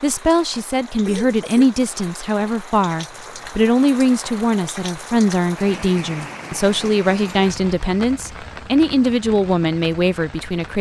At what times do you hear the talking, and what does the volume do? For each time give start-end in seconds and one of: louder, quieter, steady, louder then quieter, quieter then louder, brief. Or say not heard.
0.0-10.7 steady.